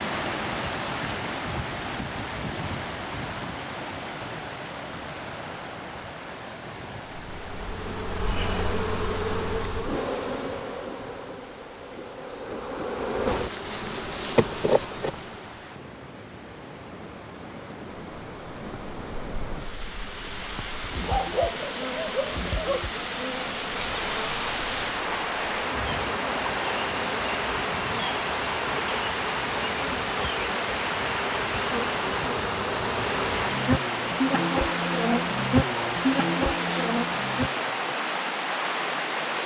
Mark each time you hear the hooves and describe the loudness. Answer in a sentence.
You can't hear the hooves here.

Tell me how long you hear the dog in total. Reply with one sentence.
You can hear the dog for 2 seconds altogether.